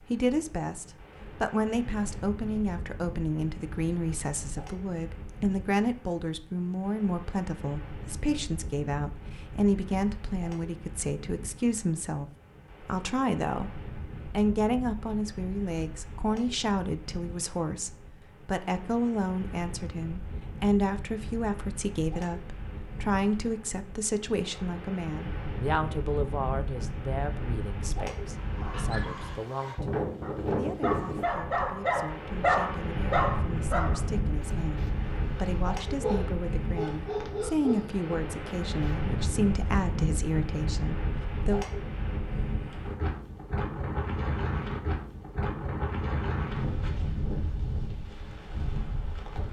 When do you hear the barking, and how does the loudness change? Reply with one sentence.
The barking can be heard from 28.4 to 39.0 s, getting louder then quieter.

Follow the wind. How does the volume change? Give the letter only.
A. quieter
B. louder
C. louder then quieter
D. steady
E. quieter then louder
B.